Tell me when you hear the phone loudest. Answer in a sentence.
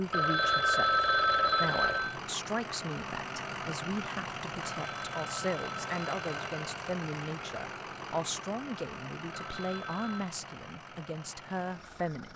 The loudest moment of the phone is at 1 second.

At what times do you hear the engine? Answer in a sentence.
You can hear the engine from 0.0 to 12.3 s.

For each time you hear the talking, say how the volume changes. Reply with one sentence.
The talking can be heard from 0.0 to 12.3 s, at a steady volume.